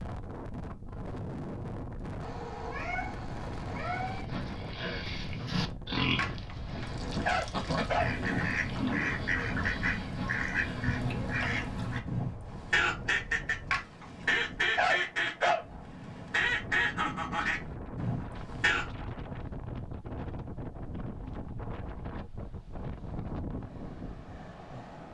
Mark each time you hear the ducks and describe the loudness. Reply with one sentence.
The ducks can be heard from 6.8 to 18.9 s, at a steady volume.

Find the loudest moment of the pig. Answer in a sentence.
The volume of the pig peaks at 6 seconds.